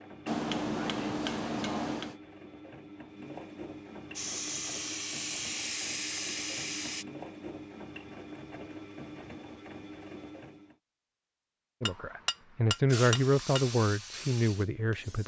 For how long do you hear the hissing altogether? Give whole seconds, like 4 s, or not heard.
5 s.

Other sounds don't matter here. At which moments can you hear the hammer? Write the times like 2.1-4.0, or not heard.
0.2-2.2, 11.8-13.7.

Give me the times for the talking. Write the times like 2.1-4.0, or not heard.
11.8-15.2.